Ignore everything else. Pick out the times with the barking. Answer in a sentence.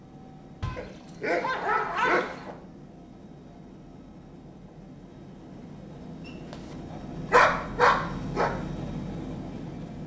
The barking can be heard from 0.6 to 2.5 s and from 6.2 to 8.5 s.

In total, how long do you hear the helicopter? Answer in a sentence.
The helicopter can be heard for 10 seconds in total.